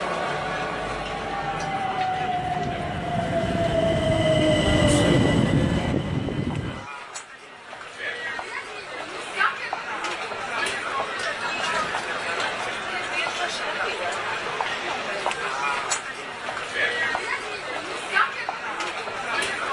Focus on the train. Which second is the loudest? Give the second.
5 s.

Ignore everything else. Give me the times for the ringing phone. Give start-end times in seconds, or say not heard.
not heard.